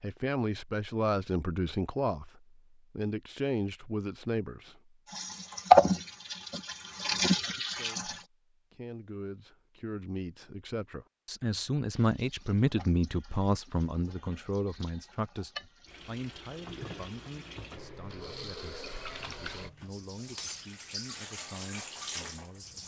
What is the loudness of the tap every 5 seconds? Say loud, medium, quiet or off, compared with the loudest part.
off, loud, quiet, quiet, quiet.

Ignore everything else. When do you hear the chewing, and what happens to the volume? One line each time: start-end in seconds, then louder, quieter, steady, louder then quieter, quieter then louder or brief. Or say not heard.
not heard.